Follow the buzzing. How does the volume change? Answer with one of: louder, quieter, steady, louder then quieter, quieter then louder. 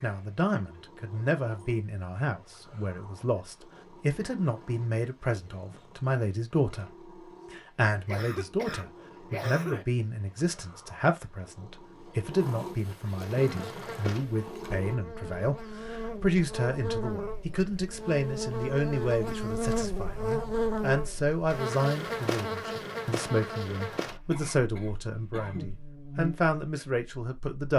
louder then quieter.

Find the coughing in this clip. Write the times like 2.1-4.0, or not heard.
8.1-9.8, 24.3-25.8.